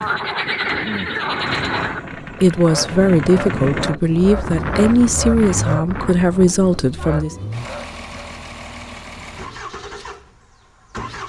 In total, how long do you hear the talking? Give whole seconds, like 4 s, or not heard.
5 s.